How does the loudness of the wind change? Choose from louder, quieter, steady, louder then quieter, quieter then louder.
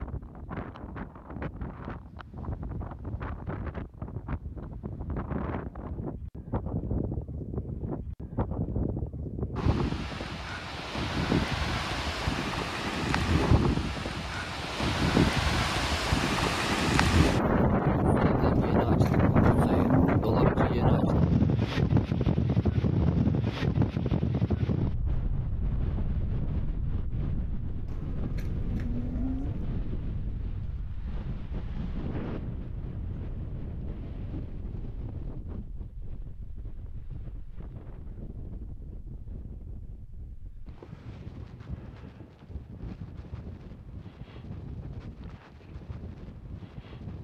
louder then quieter.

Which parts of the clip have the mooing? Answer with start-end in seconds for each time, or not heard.
18.6-20.4, 27.9-29.6.